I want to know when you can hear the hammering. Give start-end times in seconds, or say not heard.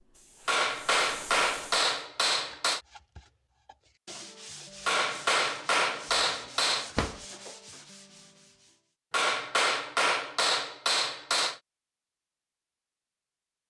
0.5-2.8, 4.8-6.9, 9.1-11.6.